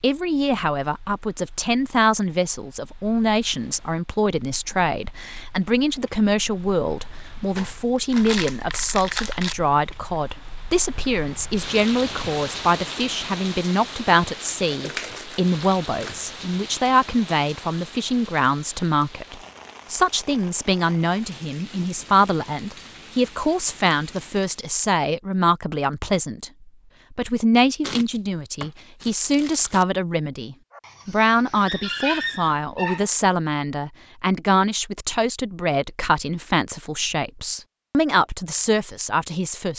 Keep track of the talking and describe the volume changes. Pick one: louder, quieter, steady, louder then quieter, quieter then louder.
steady.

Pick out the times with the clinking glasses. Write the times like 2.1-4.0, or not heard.
not heard.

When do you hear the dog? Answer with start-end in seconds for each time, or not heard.
30.7-33.1.